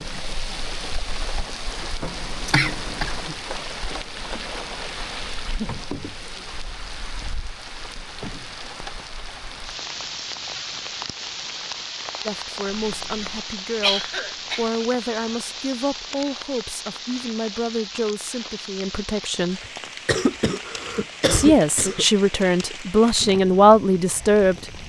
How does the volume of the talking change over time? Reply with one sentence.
The loudness of the talking goes up.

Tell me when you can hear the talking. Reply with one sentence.
You can hear the talking from 12.2 to 19.6 s and from 21.3 to 24.8 s.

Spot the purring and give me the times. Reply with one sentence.
The purring can't be heard in this clip.